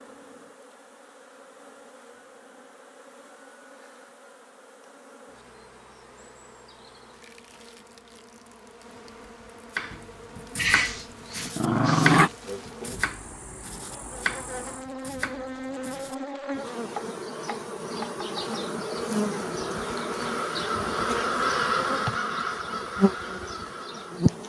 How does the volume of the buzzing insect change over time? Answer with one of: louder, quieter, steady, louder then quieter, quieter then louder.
louder.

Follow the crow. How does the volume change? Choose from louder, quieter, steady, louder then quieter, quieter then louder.
louder then quieter.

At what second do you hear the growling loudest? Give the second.
12 s.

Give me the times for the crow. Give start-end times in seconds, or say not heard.
18.5-24.2.